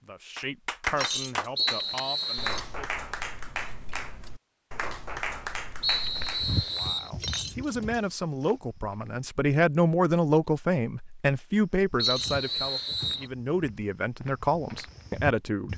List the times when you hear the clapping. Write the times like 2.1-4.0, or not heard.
0.3-6.6.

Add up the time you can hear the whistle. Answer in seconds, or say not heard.
4 s.